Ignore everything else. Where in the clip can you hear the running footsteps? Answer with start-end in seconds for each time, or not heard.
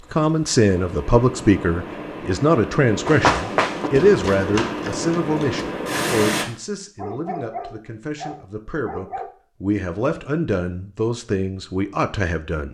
3.0-5.7.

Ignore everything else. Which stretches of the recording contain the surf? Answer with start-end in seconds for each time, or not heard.
0.0-6.5.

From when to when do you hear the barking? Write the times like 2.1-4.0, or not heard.
7.0-9.3.